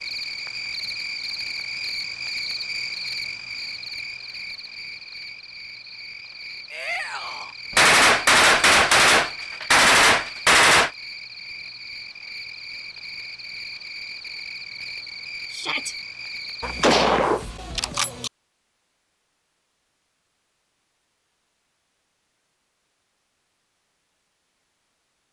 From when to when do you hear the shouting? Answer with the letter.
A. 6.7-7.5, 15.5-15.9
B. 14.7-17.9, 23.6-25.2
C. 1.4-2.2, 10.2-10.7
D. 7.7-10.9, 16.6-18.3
A.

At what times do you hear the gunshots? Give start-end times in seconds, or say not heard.
7.7-10.9, 16.6-18.3.